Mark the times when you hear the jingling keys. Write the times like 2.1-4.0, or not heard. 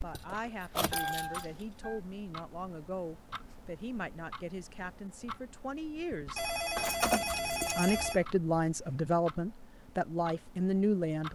0.1-2.0, 6.8-8.2.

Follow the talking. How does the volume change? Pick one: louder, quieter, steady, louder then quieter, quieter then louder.
louder.